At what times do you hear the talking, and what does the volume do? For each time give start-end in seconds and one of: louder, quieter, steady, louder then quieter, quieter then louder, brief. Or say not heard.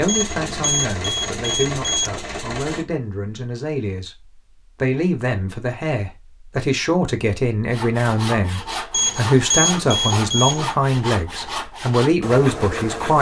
0.0-13.1 louder.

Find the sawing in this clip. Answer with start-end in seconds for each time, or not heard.
7.7-13.1.